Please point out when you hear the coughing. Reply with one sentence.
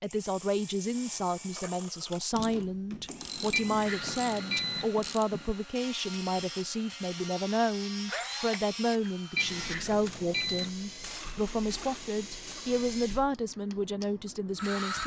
You can't hear the coughing here.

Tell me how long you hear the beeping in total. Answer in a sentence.
The beeping can be heard for 3 seconds in total.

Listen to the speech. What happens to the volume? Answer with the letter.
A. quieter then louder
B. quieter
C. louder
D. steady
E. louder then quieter
D.